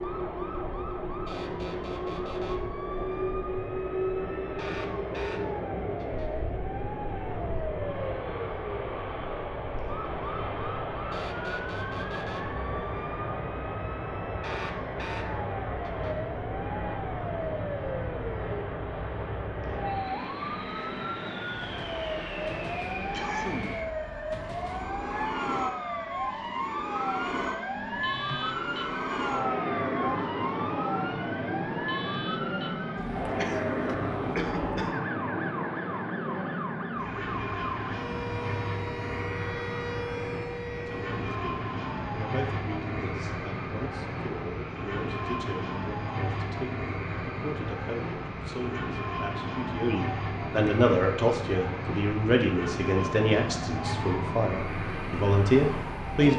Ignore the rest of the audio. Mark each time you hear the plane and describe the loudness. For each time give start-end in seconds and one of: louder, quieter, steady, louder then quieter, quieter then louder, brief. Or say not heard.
0.0-56.3 steady.